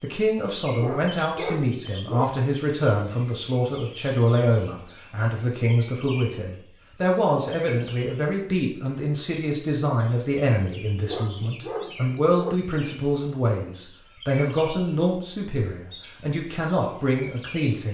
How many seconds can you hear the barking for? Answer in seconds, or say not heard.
3 s.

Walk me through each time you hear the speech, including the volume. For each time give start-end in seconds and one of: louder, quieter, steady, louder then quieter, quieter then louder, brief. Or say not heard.
0.0-17.8 steady.